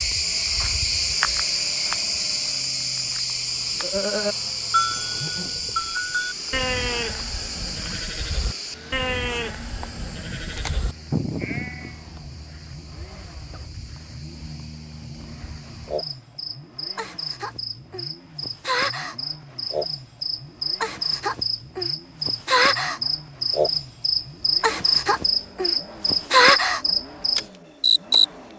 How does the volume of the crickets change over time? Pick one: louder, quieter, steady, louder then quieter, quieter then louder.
quieter then louder.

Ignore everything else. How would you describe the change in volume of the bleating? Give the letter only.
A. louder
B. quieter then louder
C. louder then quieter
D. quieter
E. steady
B.